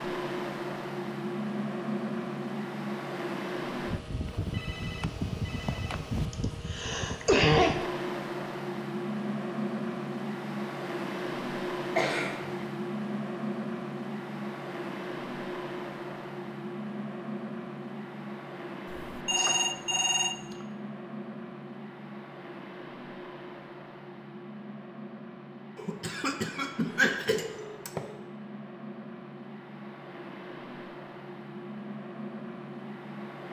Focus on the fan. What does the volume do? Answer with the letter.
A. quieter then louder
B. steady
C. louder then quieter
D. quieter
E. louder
D.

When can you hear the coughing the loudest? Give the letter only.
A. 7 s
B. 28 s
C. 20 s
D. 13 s
A.